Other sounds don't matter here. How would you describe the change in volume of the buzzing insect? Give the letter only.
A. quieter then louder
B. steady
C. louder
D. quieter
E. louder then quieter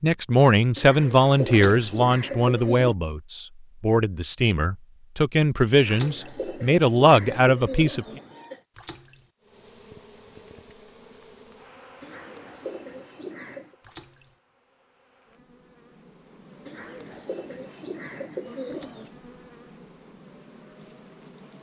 A.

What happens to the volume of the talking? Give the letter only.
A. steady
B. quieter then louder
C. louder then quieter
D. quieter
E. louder
B.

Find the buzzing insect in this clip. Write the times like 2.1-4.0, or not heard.
9.4-21.5.